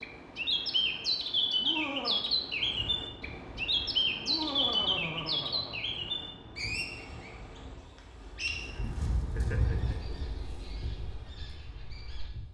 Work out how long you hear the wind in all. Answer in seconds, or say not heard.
10 s.